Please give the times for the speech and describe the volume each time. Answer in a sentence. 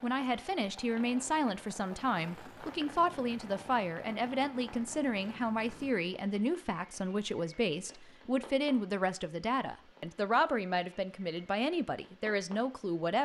You can hear the speech from 0.0 to 13.1 s, at a steady volume.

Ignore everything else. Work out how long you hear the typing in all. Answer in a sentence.
The typing can't be heard in this clip.